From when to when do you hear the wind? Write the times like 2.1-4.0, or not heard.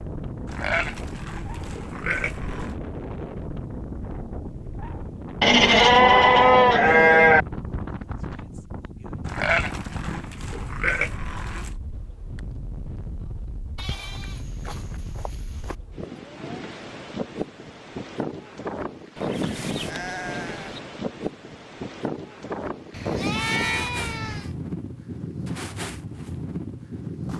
0.0-27.3.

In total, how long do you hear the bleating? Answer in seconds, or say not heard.
12 s.